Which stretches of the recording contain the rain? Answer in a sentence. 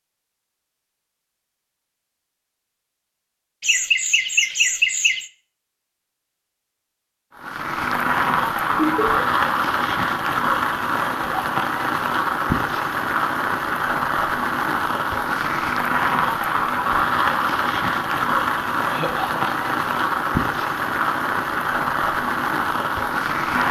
The rain can be heard from 7.3 to 23.6 s.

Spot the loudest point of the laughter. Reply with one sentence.
The loudest moment of the laughter is at 5 seconds.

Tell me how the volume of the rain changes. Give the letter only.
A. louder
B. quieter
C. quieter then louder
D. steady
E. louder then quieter
D.